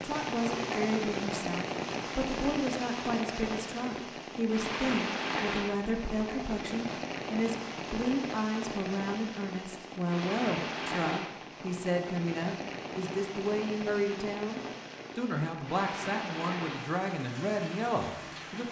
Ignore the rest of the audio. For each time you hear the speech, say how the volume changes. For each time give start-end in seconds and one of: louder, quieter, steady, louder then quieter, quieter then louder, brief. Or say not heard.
0.0-18.6 steady.